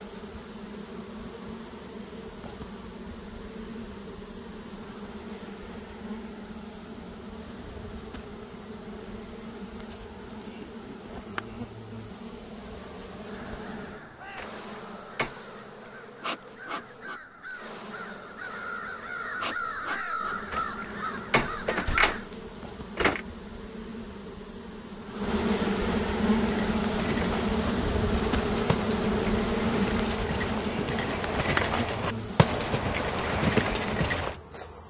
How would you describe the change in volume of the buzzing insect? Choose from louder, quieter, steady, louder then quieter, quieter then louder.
louder.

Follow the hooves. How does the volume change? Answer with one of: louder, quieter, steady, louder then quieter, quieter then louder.
louder.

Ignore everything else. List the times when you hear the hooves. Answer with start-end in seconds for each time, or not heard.
26.3-34.4.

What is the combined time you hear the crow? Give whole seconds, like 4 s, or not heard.
9 s.